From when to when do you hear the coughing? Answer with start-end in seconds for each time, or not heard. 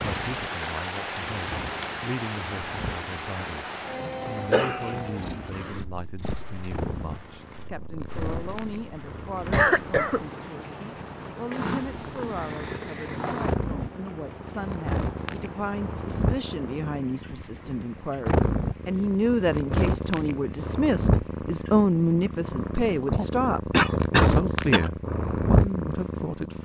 4.0-5.4, 9.5-10.2, 23.7-24.9.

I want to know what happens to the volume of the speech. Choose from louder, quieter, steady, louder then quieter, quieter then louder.
louder.